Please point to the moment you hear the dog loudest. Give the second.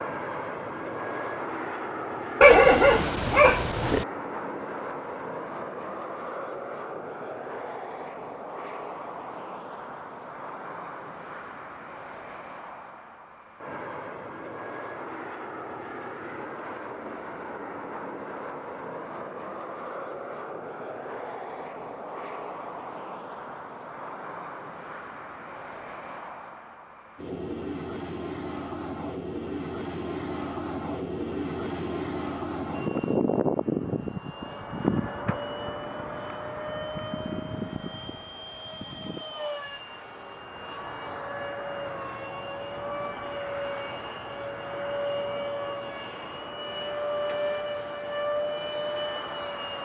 3 s.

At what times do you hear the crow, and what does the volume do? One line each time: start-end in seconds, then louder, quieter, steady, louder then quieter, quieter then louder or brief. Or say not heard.
not heard.